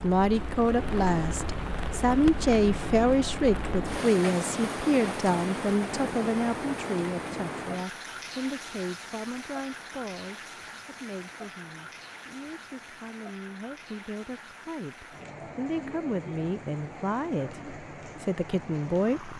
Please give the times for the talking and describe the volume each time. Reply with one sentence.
The talking can be heard from 0.0 to 19.3 s, getting quieter then louder.